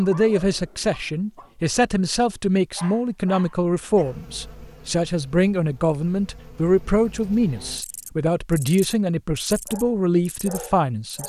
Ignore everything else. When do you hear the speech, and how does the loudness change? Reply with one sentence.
The speech can be heard from 0.0 to 11.2 s, at a steady volume.